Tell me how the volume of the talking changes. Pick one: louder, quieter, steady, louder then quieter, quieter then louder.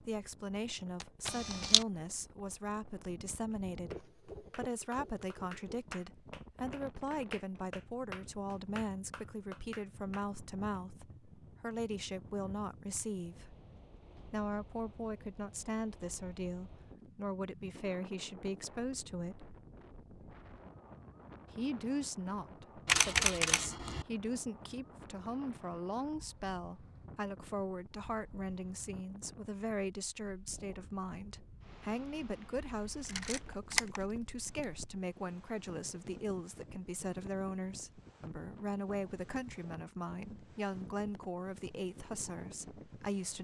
steady.